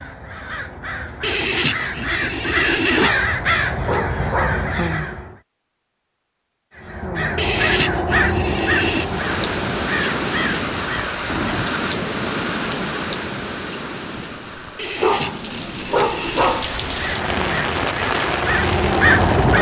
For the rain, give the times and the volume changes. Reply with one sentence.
The rain can be heard from 8.8 to 19.5 s, getting quieter then louder.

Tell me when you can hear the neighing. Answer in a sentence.
You can hear the neighing from 1.2 to 3.1 s, from 7.3 to 9.1 s and from 14.8 to 16.6 s.